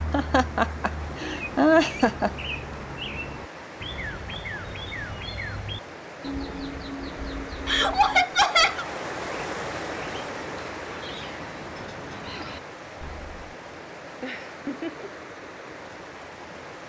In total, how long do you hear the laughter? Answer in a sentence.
You can hear the laughter for 4 seconds altogether.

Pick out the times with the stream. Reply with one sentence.
The stream can be heard from 0.0 to 16.8 s.